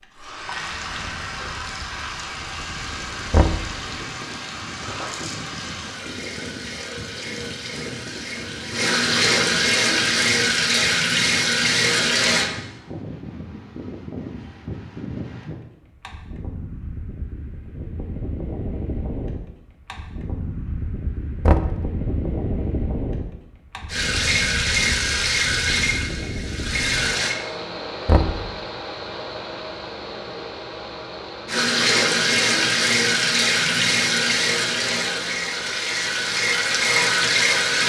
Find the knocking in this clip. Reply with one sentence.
The knocking can be heard from 3.3 to 3.8 s, from 21.4 to 21.9 s and from 28.1 to 28.5 s.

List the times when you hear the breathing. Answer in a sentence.
The breathing can't be heard in this clip.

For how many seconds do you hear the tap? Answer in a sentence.
You can hear the tap for 22 seconds altogether.